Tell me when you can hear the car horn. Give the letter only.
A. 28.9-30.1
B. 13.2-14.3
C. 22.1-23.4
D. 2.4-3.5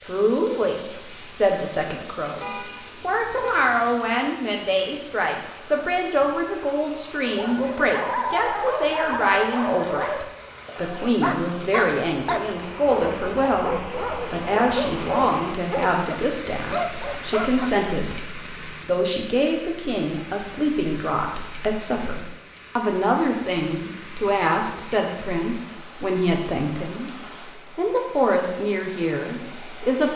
D.